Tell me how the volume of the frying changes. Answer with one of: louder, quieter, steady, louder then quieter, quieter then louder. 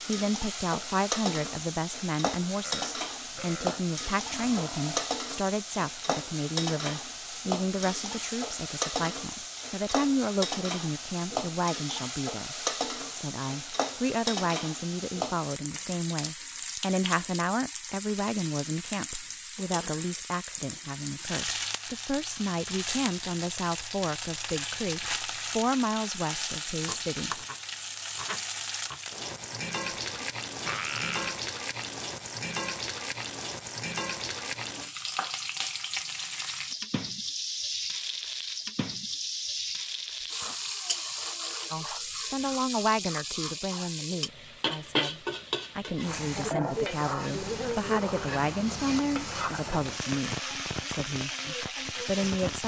steady.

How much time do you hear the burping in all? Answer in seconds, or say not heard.
4 s.